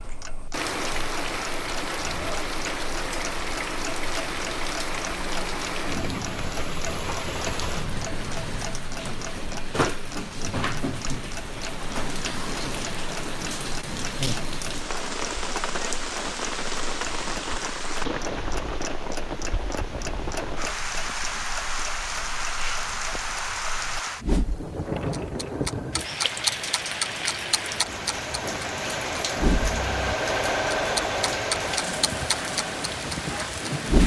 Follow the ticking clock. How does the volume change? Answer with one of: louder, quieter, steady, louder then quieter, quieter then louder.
louder.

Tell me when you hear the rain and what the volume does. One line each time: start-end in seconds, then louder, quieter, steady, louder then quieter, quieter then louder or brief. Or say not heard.
0.0-34.0 steady.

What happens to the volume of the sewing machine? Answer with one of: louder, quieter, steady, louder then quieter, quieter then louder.
louder then quieter.